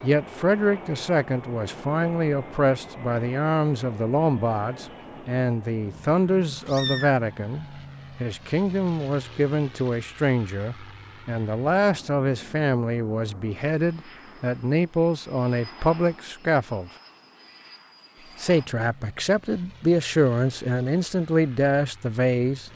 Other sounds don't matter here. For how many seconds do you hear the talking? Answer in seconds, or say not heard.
21 s.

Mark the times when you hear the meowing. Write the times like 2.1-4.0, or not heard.
6.5-7.2.